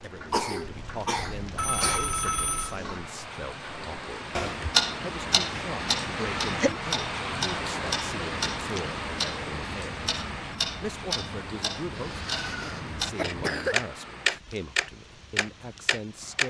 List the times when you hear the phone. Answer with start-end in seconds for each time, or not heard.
1.4-2.8.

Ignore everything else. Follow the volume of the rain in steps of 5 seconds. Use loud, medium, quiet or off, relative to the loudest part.
medium, loud, medium, quiet.